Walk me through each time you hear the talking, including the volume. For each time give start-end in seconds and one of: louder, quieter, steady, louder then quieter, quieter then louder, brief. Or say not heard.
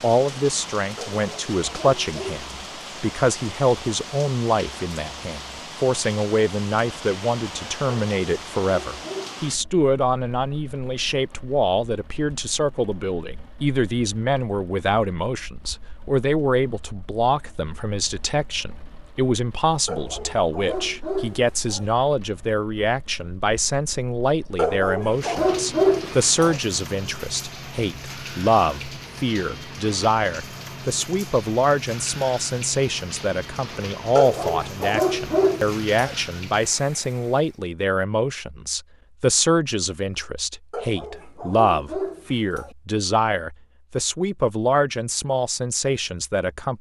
0.0-46.7 steady.